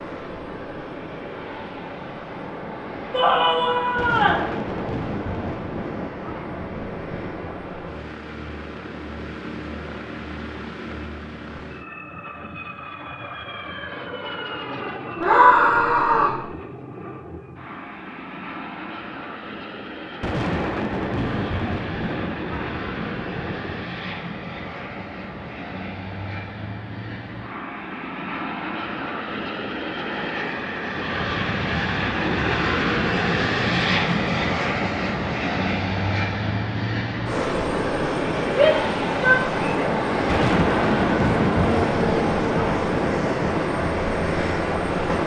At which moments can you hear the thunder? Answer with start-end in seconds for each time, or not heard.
4.0-7.6, 20.2-23.9, 40.2-43.6.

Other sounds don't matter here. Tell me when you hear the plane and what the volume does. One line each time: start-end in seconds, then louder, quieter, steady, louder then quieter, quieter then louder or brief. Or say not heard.
0.0-45.2 louder.